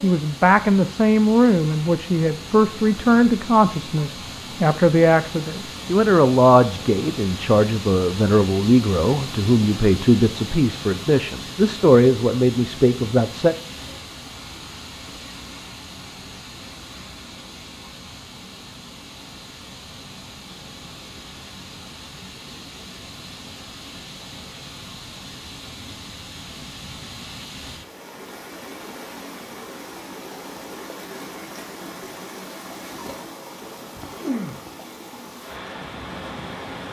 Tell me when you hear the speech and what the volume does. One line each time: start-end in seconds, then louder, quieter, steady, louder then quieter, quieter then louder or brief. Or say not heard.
0.0-13.6 steady.